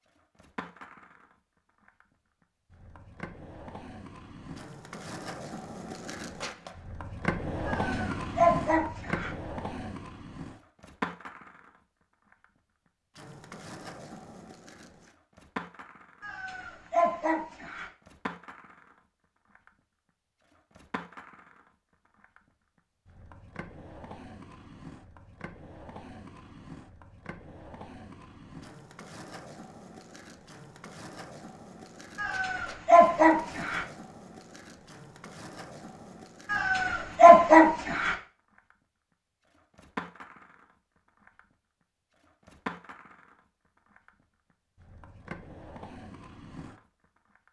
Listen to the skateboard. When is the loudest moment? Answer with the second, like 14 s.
8 s.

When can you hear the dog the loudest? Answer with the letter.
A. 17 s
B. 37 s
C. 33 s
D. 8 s
B.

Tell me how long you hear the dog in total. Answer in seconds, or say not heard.
7 s.